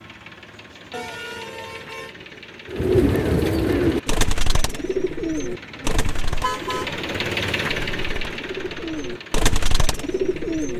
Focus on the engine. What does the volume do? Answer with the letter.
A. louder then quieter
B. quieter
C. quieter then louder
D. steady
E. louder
A.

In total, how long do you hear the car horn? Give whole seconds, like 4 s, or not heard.
2 s.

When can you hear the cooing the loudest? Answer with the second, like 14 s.
3 s.